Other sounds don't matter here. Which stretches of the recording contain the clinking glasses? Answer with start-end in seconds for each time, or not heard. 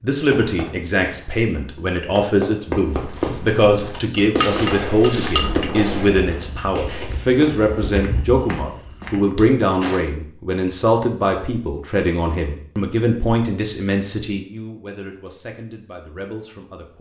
4.2-6.0.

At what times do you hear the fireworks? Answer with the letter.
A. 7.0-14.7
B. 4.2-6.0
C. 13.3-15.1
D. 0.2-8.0
D.